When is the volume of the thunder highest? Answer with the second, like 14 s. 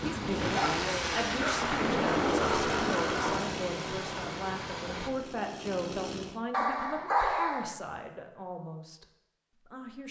2 s.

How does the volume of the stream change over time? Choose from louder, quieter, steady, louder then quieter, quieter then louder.
steady.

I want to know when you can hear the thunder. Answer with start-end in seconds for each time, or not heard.
0.4-3.5.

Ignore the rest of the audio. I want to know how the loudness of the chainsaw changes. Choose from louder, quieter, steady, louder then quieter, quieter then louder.
quieter.